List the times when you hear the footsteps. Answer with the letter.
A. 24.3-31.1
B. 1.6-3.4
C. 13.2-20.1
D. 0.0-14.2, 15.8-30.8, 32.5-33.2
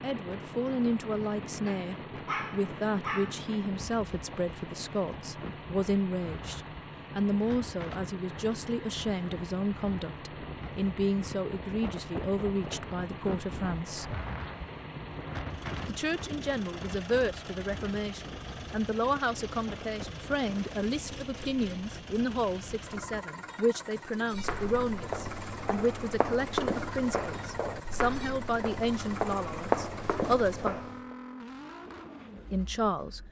A.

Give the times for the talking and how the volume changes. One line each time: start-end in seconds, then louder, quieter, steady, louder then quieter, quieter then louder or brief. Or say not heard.
0.0-14.2 steady
15.8-30.8 steady
32.5-33.2 brief.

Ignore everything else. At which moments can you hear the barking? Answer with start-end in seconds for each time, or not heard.
1.6-3.4.